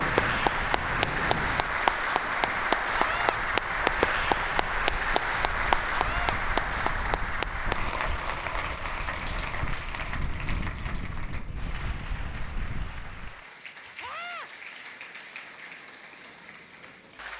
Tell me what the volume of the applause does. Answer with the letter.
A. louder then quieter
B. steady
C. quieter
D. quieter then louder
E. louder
C.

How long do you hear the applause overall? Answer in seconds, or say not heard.
17 s.